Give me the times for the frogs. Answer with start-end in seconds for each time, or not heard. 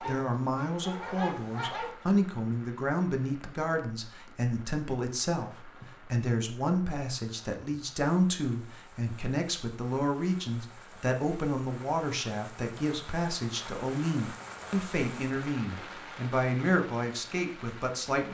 not heard.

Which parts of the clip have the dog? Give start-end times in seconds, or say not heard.
0.0-1.9.